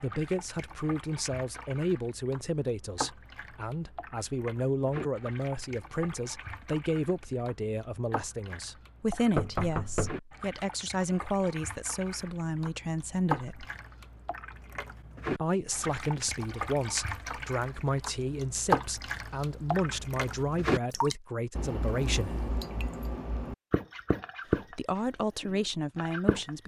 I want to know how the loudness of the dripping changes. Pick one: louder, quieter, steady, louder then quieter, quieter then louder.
louder.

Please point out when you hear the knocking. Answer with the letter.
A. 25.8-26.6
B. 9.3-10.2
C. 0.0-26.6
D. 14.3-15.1
B.